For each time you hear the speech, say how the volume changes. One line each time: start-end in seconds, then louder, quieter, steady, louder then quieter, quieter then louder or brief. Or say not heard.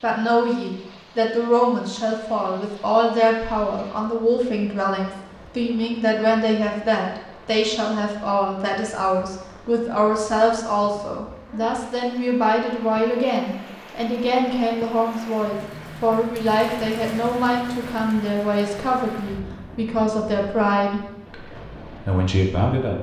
0.0-21.4 steady
22.1-22.9 brief.